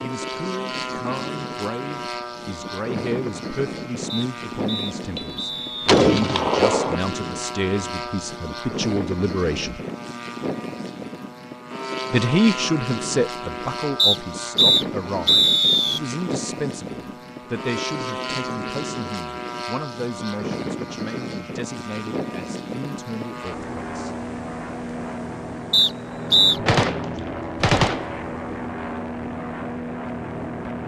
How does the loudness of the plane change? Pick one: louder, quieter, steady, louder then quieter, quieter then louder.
steady.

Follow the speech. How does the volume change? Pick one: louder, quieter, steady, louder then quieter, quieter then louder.
louder then quieter.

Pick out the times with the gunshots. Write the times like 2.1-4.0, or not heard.
5.2-7.0, 26.6-28.1.